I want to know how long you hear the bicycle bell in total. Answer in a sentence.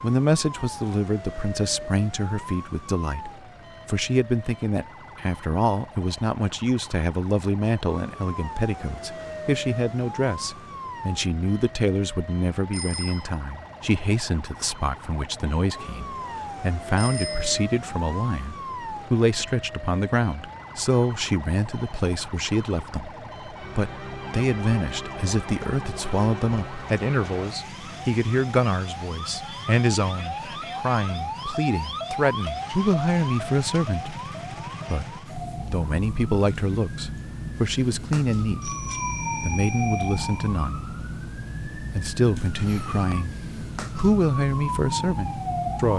You can hear the bicycle bell for 3 seconds altogether.